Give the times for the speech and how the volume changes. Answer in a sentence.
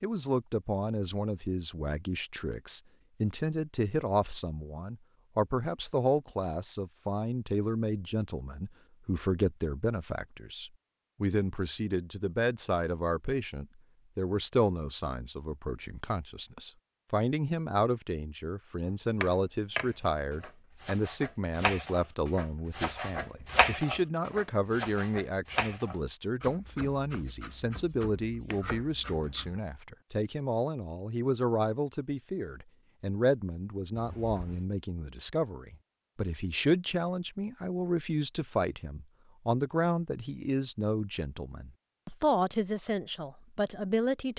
You can hear the speech from 0.0 to 44.3 s, at a steady volume.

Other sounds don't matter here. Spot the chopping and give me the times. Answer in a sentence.
You can hear the chopping from 19.2 to 29.6 s.